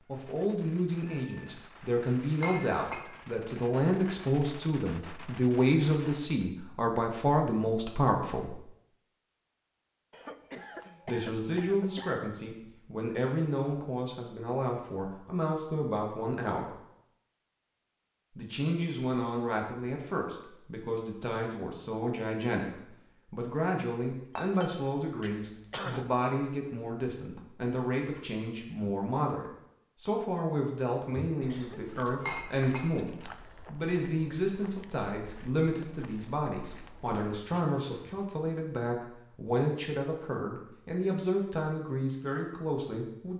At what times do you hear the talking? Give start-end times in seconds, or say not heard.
0.1-8.6, 11.1-16.8, 18.4-43.3.